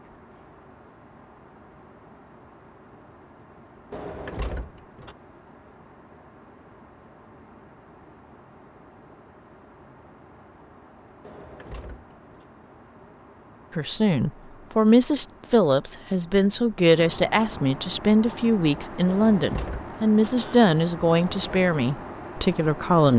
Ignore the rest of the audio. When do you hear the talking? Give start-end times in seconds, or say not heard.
13.8-23.1.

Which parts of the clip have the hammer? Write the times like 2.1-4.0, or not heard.
not heard.